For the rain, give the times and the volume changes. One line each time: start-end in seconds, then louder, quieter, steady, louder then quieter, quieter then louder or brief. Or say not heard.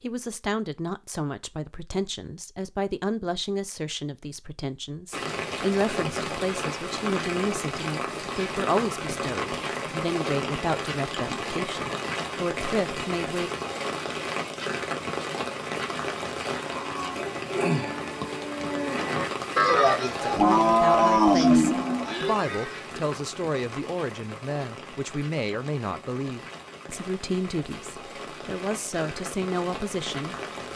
5.1-30.7 quieter.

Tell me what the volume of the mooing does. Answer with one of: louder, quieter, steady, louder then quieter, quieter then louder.
louder.